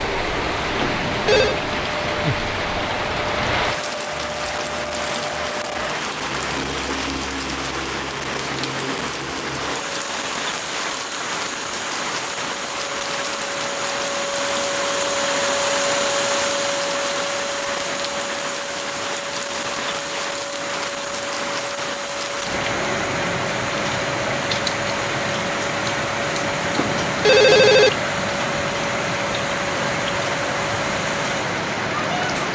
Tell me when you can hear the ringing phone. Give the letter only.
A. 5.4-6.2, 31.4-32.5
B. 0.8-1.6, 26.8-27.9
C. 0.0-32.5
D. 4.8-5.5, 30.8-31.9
B.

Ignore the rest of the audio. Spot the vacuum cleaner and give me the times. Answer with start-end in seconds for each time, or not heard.
0.0-32.5.